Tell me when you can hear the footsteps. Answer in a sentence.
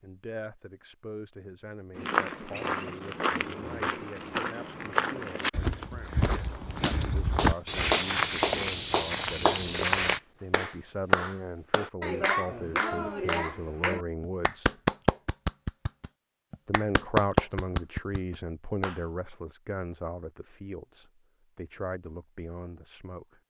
You can hear the footsteps from 1.9 to 10.2 s.